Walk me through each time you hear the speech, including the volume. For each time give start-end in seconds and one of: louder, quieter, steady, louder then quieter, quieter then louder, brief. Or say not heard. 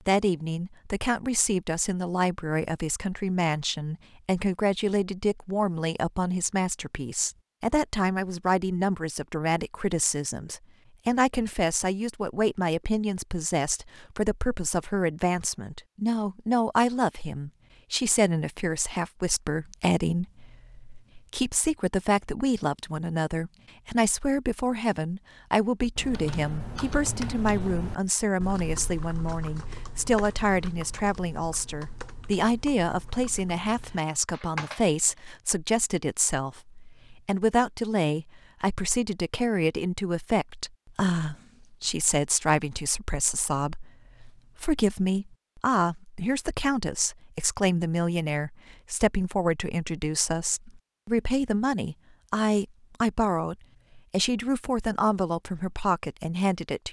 0.1-56.8 steady.